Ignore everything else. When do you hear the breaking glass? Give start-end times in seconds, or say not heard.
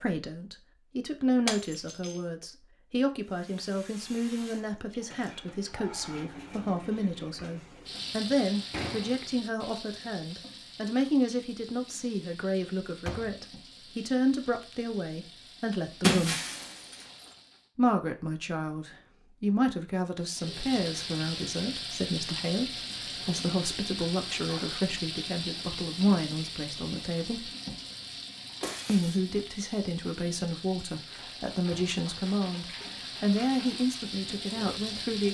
1.4-2.1, 16.0-17.2, 28.6-29.2.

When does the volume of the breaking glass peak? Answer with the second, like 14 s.
16 s.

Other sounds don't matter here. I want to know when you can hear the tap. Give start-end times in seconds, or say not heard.
3.2-17.7, 20.2-35.2.